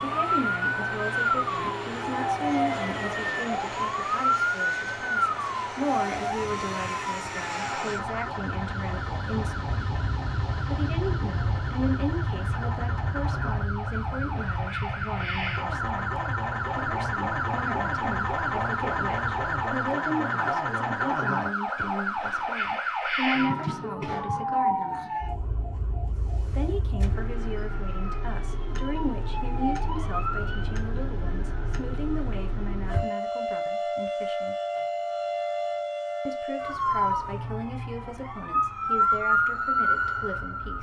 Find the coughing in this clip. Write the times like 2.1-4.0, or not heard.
not heard.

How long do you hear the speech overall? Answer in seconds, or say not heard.
36 s.